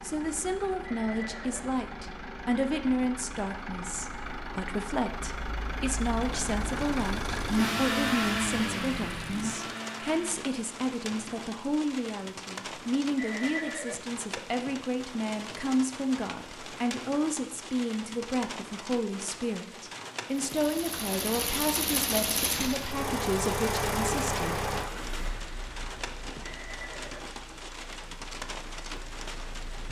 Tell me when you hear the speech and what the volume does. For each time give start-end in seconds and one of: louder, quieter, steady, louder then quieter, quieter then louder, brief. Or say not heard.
0.0-24.5 steady.